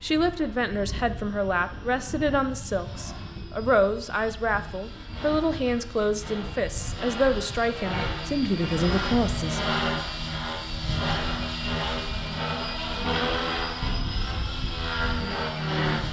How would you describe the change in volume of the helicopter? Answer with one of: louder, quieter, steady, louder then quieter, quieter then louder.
louder.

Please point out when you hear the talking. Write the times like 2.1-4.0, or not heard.
0.0-9.7.